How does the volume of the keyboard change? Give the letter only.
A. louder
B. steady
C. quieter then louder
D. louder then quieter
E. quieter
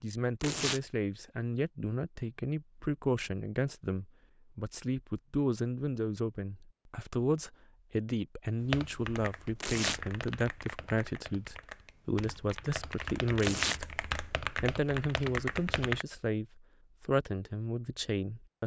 C.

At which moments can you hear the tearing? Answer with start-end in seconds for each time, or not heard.
0.4-0.8, 9.6-10.0, 13.3-13.8.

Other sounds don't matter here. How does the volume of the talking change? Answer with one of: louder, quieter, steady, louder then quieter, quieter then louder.
steady.